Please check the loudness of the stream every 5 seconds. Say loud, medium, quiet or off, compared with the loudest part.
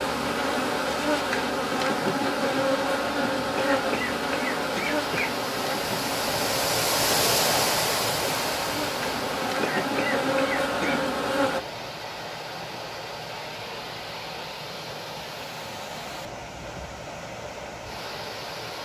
medium, loud, medium, medium.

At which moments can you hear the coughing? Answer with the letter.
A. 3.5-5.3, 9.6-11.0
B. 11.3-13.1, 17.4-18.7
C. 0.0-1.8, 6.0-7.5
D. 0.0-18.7
A.